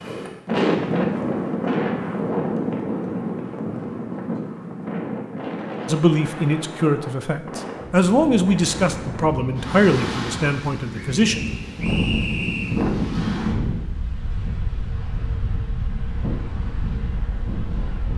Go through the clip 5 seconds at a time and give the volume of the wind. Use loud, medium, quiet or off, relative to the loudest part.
loud, medium, loud, medium.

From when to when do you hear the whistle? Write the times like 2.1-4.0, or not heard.
11.2-12.8.